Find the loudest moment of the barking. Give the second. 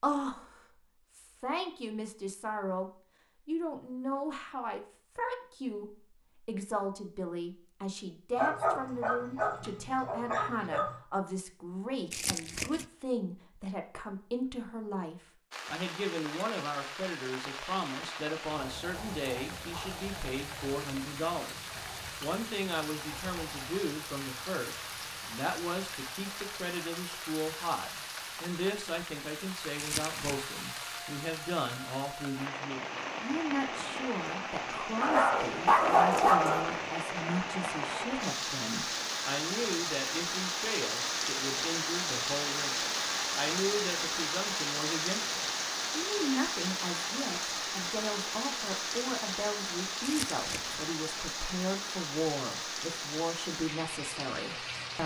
36 s.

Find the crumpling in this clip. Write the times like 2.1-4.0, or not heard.
12.1-12.8, 29.8-30.5, 50.0-50.9.